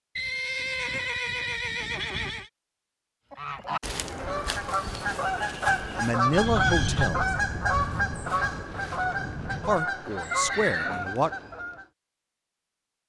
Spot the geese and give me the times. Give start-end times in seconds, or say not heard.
3.3-11.8.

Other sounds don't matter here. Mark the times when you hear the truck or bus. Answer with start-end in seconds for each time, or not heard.
not heard.